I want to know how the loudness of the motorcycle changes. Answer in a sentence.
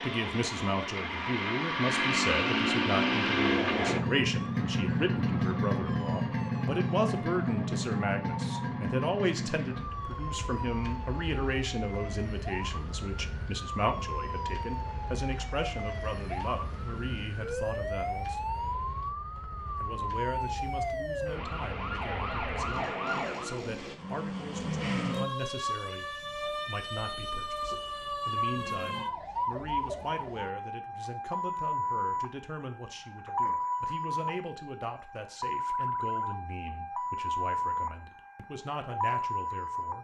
The volume of the motorcycle goes down.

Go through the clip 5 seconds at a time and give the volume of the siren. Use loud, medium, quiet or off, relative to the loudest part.
quiet, medium, medium, loud, loud, loud, loud, loud.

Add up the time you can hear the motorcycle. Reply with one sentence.
You can hear the motorcycle for 24 seconds altogether.